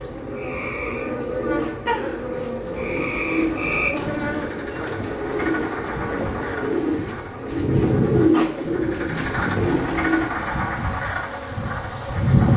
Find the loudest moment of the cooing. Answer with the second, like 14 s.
8 s.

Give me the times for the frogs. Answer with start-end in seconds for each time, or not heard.
0.0-12.5.